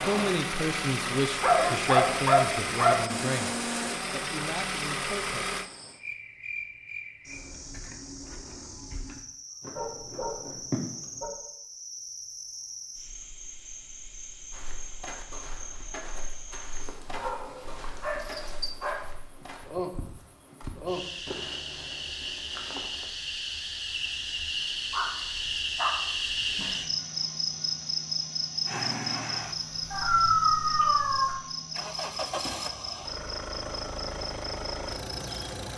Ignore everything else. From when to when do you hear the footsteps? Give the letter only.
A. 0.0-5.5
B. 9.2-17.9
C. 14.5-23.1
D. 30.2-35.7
C.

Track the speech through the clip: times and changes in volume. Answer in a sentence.
The speech can be heard from 0.0 to 5.5 s, getting quieter.